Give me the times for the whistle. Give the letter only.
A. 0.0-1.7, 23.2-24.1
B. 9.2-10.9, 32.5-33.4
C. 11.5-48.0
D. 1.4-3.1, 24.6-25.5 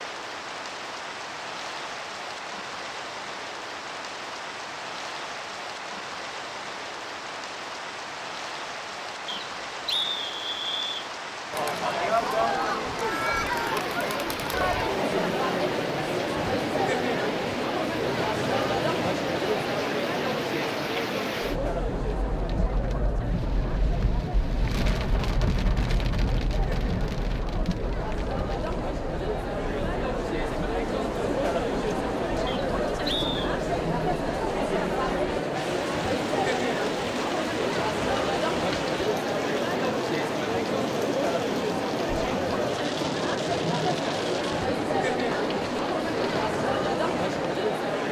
B.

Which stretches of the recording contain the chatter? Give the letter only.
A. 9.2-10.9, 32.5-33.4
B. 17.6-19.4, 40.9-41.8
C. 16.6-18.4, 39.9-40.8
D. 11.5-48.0
D.